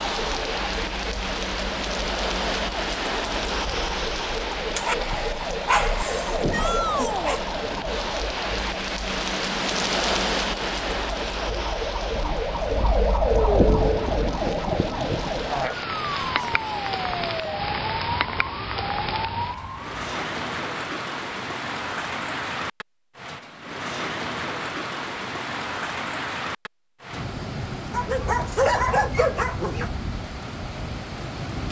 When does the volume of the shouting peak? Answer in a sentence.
The volume of the shouting peaks at 7 seconds.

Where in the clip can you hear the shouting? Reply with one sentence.
The shouting can be heard from 6.5 to 7.5 s and from 16.1 to 16.9 s.